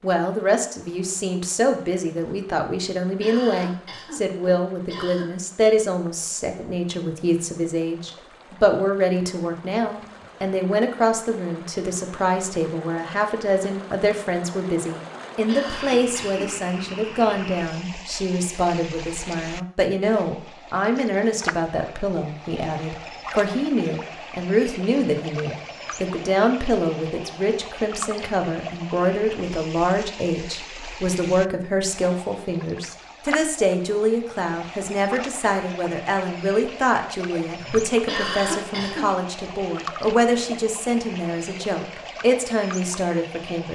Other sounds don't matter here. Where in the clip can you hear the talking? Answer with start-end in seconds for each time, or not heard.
0.0-43.7.